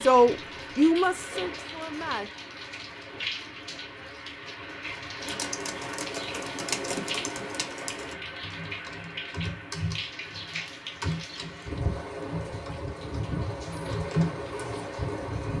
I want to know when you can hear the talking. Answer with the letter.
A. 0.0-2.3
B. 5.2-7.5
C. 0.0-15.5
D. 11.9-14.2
A.